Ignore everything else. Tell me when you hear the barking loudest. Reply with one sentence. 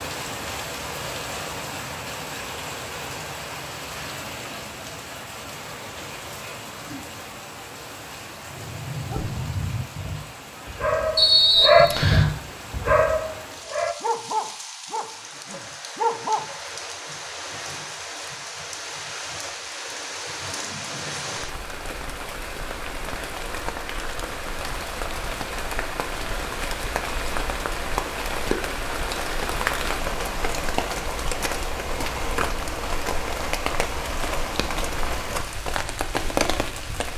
The loudest moment of the barking is at 12 seconds.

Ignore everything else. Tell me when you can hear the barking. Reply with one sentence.
You can hear the barking from 8.4 to 16.4 s.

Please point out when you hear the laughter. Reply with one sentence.
The laughter can't be heard in this clip.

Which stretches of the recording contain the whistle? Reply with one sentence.
The whistle can be heard from 11.2 to 12.3 s.